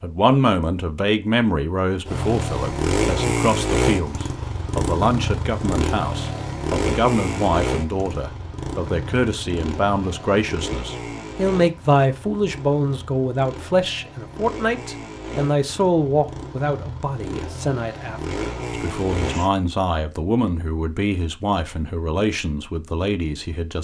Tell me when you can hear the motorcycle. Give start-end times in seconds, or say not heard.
2.0-19.5.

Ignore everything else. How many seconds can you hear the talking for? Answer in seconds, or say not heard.
24 s.